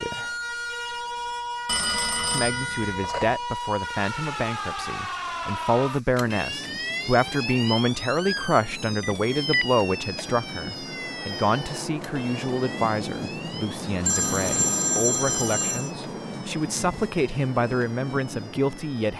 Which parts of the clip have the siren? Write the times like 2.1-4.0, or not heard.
0.0-19.1.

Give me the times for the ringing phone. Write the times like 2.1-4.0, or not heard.
1.6-3.4, 9.0-9.7, 14.1-15.9.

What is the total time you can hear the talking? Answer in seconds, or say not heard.
17 s.